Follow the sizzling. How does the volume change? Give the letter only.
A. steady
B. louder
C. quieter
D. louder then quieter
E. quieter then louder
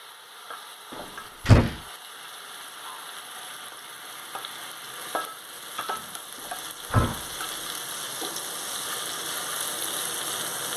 B.